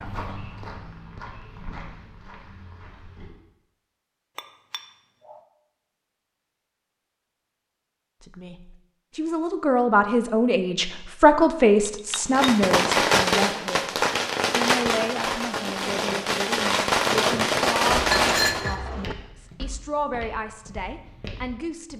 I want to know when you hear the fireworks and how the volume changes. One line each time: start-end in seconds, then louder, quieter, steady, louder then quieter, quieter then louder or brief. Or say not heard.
12.3-18.6 quieter then louder.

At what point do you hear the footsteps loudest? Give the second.
17 s.